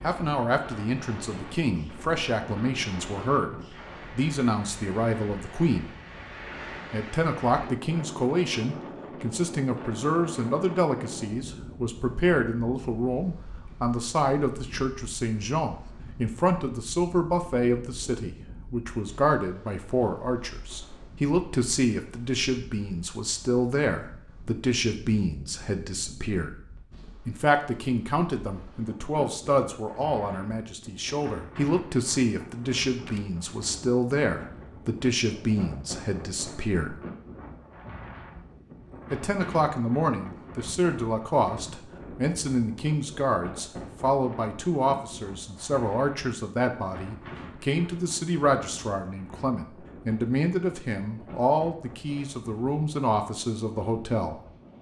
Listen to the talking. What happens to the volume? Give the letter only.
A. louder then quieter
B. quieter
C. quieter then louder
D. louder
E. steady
E.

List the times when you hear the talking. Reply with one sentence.
The talking can be heard from 0.0 to 5.9 s, from 6.9 to 26.6 s, from 27.2 to 37.0 s and from 39.1 to 54.4 s.